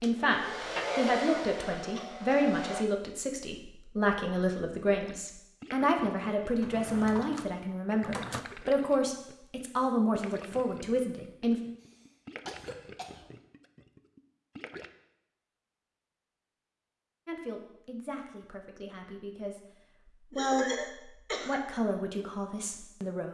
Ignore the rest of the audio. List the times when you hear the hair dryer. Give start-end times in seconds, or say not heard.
0.0-2.9.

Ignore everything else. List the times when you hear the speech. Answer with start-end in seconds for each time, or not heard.
0.0-11.6, 17.2-23.2.